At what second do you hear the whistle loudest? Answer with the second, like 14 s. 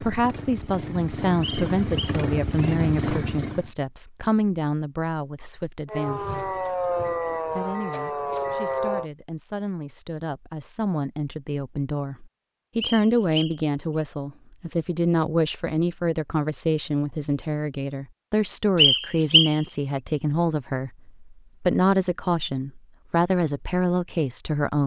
19 s.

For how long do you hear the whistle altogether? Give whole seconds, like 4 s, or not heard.
3 s.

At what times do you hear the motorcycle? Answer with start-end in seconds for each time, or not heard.
0.0-3.7.